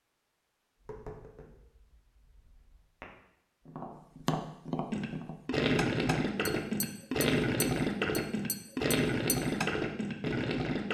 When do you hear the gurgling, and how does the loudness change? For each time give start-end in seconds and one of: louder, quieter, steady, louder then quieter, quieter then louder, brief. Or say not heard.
4.8-10.8 steady.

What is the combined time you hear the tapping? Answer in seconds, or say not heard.
9 s.